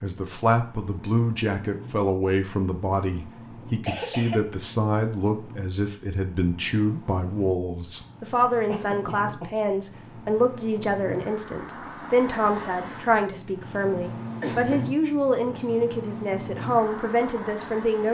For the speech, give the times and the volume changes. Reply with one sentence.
You can hear the speech from 0.0 to 18.0 s, at a steady volume.